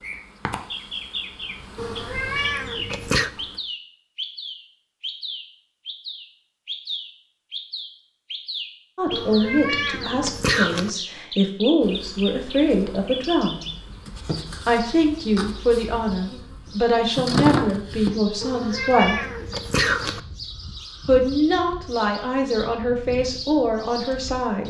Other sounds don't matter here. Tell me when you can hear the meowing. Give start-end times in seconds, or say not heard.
1.8-3.3, 9.1-10.9, 18.4-20.2.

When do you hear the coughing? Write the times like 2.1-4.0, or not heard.
not heard.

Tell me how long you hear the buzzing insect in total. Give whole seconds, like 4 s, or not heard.
10 s.